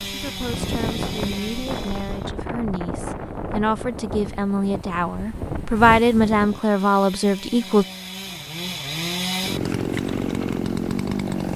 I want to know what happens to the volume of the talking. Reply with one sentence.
The volume of the talking goes up.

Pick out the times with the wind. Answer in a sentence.
You can hear the wind from 0.0 to 6.6 s.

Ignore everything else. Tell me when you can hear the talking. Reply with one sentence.
The talking can be heard from 0.1 to 7.8 s.